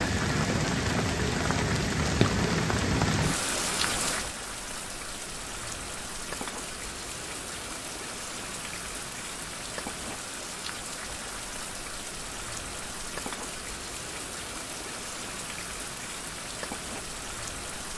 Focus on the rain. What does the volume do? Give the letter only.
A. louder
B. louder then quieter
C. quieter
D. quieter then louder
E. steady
C.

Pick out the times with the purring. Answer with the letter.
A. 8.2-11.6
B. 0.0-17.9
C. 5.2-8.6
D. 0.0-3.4
D.